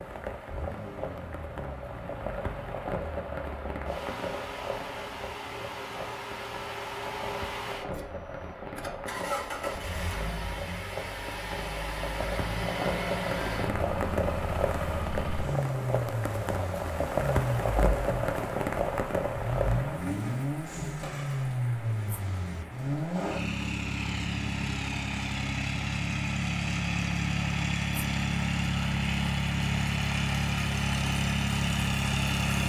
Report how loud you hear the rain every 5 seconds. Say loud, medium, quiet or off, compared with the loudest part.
medium, medium, loud, loud, quiet, quiet, medium.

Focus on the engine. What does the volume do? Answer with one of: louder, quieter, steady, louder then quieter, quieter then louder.
louder.